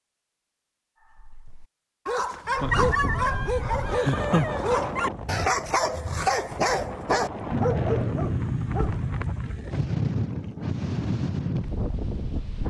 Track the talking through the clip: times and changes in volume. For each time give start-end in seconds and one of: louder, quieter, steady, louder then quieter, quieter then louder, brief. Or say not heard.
not heard.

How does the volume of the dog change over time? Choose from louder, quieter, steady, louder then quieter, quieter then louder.
steady.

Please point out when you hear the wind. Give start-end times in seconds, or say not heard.
2.5-12.6.